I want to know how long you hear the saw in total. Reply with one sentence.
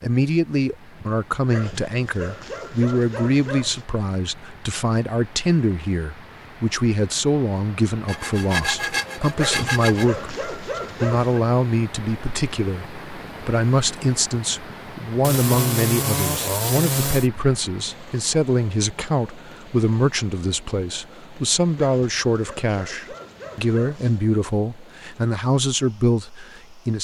You can hear the saw for 4 seconds altogether.